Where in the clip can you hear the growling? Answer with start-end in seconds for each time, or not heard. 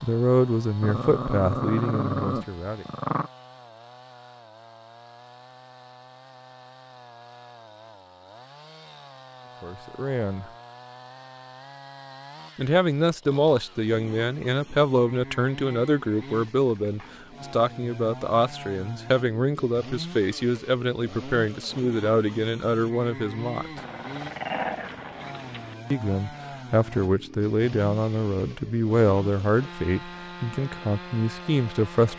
0.8-3.3, 23.8-25.8.